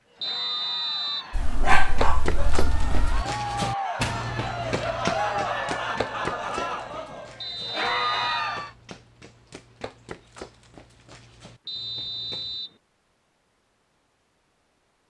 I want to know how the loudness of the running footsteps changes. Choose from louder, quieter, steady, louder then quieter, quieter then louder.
quieter.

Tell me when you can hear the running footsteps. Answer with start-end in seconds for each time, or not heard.
1.6-12.6.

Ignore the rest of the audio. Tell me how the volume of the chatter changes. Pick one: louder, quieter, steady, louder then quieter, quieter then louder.
louder.